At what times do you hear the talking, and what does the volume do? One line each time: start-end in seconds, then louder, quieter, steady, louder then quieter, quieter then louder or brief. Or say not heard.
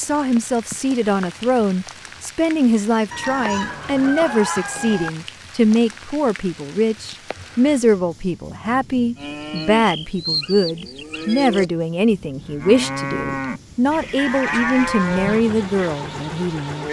0.0-16.8 steady.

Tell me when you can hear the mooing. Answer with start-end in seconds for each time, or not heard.
9.2-15.9.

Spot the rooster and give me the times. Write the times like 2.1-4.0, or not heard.
3.1-5.1.